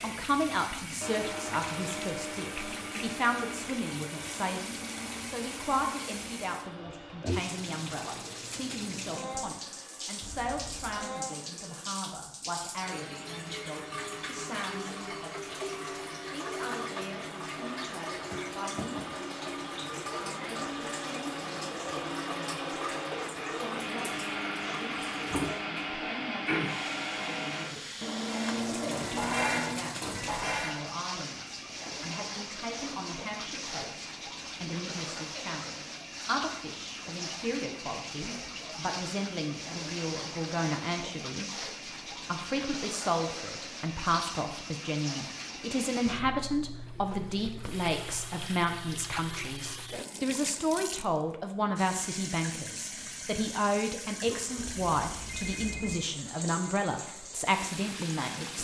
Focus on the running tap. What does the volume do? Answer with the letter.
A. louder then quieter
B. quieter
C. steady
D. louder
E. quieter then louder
C.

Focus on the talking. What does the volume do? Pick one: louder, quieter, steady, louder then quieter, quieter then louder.
quieter then louder.